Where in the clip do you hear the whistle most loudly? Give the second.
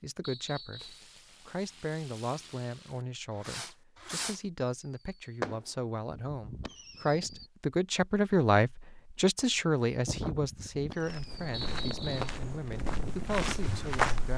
12 s.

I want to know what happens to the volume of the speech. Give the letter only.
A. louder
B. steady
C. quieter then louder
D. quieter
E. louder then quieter
E.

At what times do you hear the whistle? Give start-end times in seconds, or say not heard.
0.2-1.1, 11.5-12.3.